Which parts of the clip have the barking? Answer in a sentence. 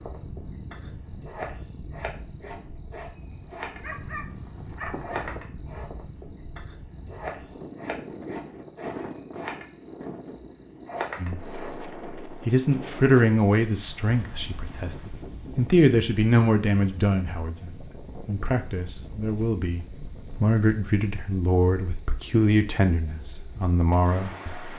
The barking can be heard from 3.8 to 5.4 s.